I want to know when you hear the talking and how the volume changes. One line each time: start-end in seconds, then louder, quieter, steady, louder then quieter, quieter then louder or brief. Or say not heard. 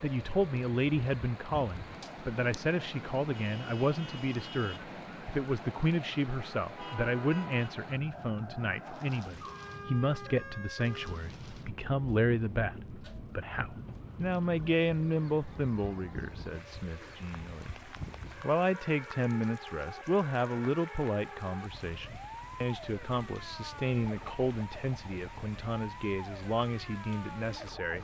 0.0-28.0 steady.